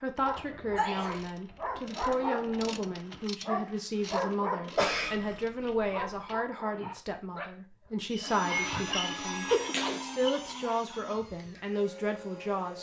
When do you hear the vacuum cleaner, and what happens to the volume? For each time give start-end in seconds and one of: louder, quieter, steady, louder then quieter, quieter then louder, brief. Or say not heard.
8.1-12.7 quieter.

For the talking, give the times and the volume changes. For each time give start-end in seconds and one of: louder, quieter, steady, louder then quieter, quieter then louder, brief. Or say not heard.
0.0-12.7 steady.